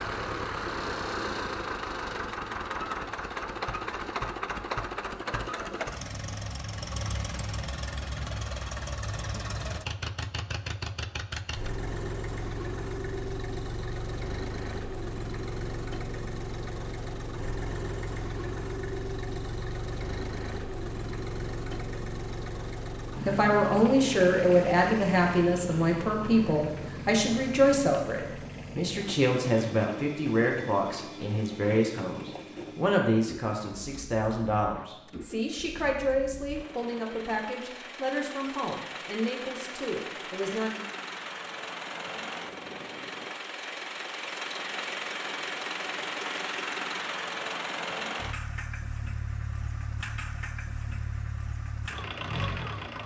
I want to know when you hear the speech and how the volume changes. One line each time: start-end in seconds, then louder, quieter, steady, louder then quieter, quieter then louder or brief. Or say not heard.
23.2-40.9 quieter.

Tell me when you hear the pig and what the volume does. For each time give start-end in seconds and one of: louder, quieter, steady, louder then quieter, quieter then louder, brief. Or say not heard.
not heard.